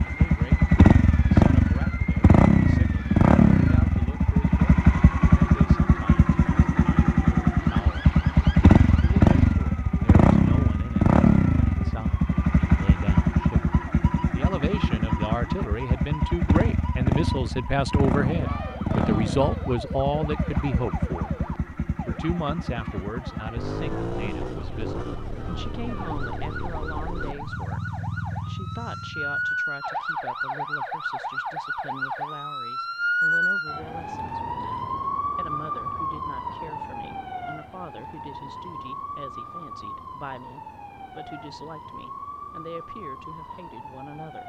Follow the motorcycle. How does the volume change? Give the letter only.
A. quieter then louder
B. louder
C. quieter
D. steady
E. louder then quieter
C.